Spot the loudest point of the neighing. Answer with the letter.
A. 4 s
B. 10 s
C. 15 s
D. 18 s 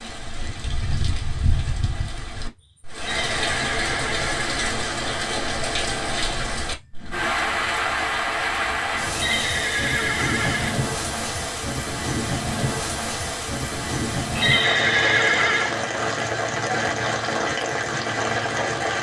C.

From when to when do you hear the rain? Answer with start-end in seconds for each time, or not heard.
0.0-18.9.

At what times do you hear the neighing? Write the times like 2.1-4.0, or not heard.
3.0-4.5, 9.2-10.8, 14.3-15.8.